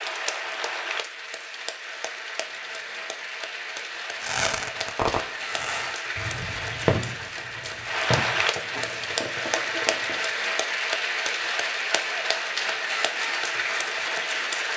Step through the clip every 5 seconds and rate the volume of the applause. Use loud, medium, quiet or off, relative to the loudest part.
medium, loud, loud.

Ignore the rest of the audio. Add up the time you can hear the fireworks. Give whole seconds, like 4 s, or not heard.
6 s.